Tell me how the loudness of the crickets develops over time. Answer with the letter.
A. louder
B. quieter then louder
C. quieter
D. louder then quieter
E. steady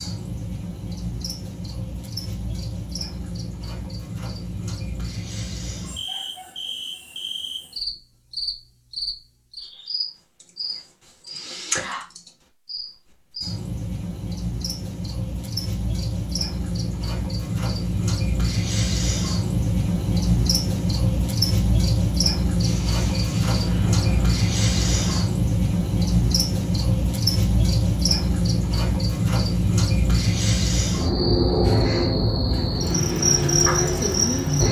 A.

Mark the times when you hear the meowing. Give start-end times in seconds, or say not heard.
not heard.